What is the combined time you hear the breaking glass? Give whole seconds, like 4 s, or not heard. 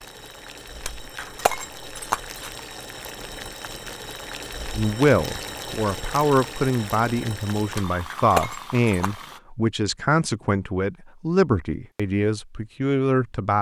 3 s.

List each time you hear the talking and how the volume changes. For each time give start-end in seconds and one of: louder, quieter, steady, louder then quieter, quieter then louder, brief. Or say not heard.
4.8-13.5 steady.